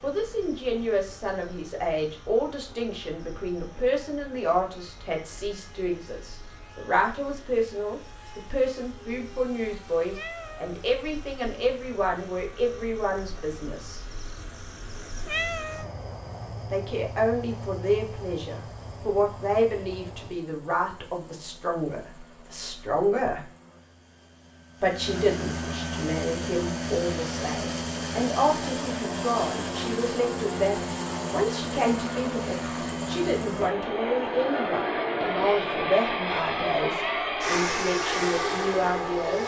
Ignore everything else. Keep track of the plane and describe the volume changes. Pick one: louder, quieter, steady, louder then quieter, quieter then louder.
louder.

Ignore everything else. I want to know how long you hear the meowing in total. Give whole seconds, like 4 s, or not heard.
2 s.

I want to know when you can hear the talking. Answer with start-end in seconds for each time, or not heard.
0.0-14.1, 16.7-23.5, 24.8-39.4.